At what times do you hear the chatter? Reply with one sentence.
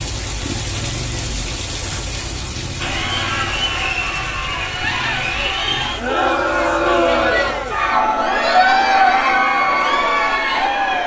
The chatter can be heard from 2.8 to 11.0 s.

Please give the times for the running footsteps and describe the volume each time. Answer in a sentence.
The running footsteps can't be heard in this clip.